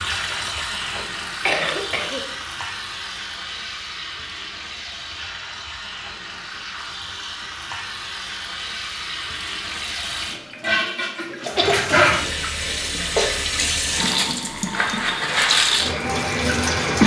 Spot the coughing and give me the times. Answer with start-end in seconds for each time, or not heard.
0.3-2.2, 11.4-13.3.